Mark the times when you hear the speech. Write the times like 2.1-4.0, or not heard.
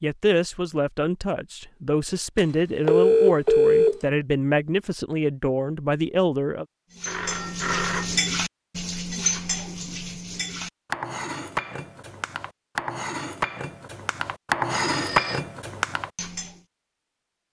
0.0-6.7.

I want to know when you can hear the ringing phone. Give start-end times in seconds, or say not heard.
2.4-4.0, 7.0-8.2, 14.8-15.4.